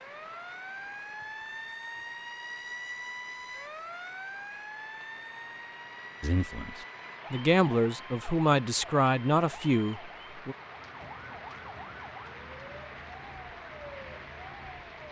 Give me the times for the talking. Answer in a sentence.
You can hear the talking from 6.2 to 10.6 s.